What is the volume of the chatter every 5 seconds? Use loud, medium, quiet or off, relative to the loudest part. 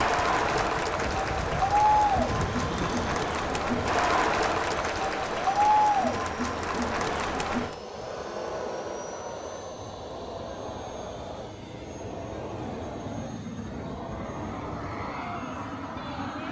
loud, loud, quiet, quiet.